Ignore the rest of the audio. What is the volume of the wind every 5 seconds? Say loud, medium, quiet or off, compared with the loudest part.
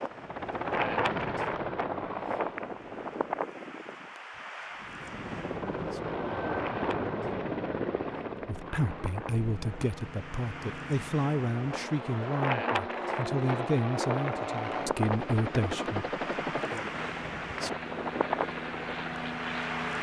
loud, medium, loud, loud.